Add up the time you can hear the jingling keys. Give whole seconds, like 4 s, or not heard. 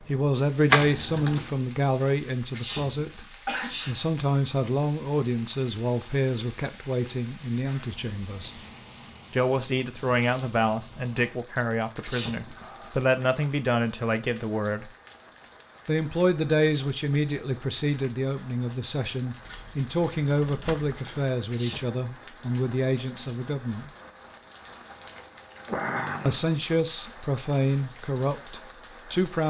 3 s.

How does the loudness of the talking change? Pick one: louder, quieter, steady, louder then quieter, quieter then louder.
steady.